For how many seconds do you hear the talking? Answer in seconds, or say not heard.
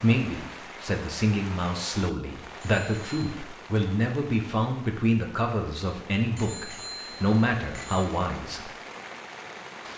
9 s.